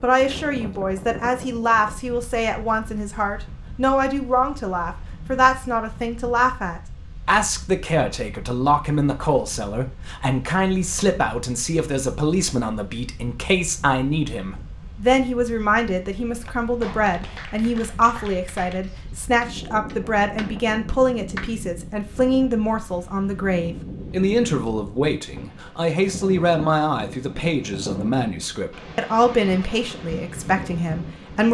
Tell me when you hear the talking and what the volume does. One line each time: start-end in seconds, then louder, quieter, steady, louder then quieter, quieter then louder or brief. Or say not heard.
0.0-31.5 steady.